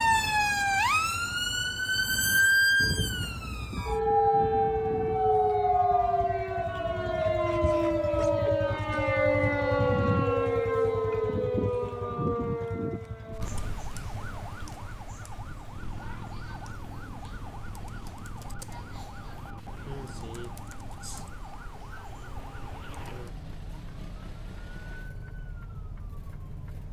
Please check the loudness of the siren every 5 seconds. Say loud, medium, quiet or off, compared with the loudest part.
loud, loud, medium, quiet, quiet, quiet.